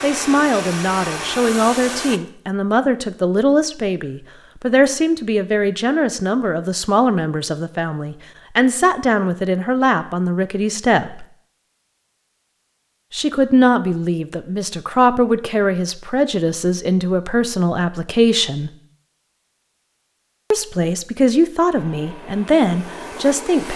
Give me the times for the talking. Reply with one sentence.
You can hear the talking from 0.0 to 11.2 s, from 13.1 to 18.7 s and from 20.5 to 23.7 s.